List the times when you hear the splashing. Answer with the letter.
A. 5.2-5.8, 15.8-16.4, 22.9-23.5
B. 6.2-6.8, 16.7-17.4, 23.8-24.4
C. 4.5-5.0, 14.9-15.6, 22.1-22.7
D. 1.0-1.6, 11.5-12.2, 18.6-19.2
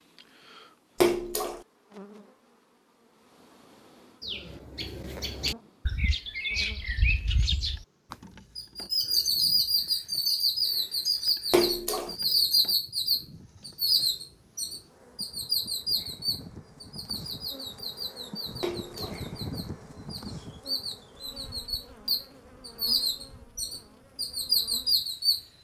D.